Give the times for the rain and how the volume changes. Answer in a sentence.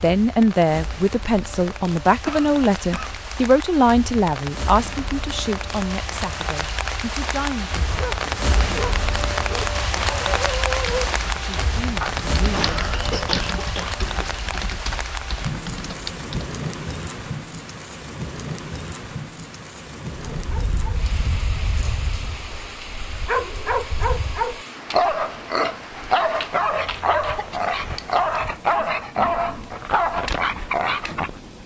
You can hear the rain from 0.0 to 31.6 s, getting louder then quieter.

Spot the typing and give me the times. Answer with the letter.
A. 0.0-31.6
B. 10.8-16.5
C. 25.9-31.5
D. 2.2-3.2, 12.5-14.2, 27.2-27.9
B.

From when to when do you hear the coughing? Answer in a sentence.
The coughing can be heard from 2.2 to 3.2 s, from 12.5 to 14.2 s and from 27.2 to 27.9 s.